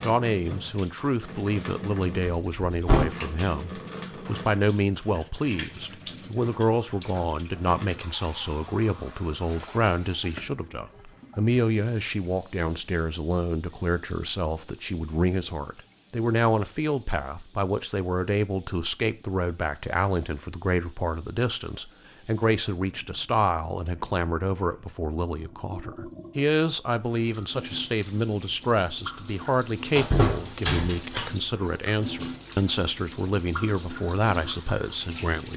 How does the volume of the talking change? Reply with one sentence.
The volume of the talking stays about the same.